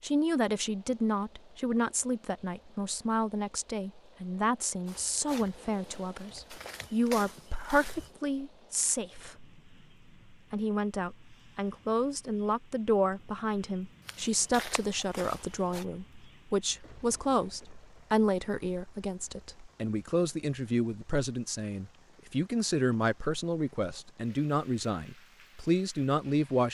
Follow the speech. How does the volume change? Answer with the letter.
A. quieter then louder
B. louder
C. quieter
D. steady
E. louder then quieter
D.